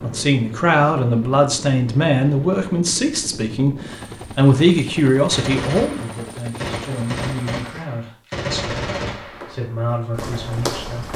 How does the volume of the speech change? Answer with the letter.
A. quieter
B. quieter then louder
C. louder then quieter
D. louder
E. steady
A.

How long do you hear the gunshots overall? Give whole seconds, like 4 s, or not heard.
4 s.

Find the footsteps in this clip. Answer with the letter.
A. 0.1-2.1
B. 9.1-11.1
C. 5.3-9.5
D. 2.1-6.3
B.